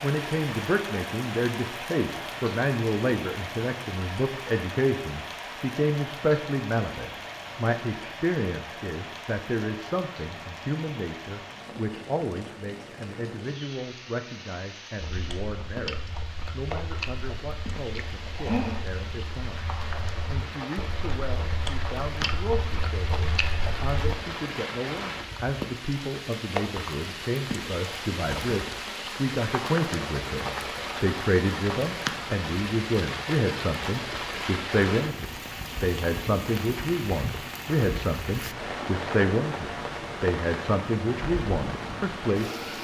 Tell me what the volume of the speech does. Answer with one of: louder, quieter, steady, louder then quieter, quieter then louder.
quieter then louder.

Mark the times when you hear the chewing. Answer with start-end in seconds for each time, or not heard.
15.0-24.1.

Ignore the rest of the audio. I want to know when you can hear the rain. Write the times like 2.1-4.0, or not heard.
0.0-42.7.